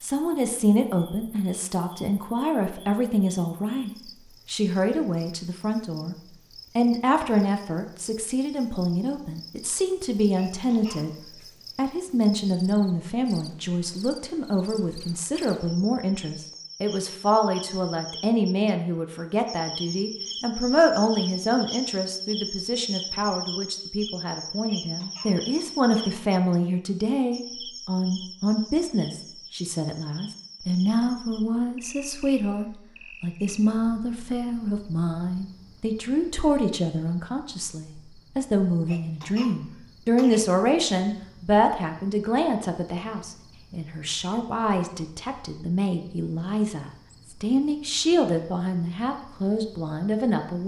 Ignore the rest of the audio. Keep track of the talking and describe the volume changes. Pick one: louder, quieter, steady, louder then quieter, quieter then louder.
steady.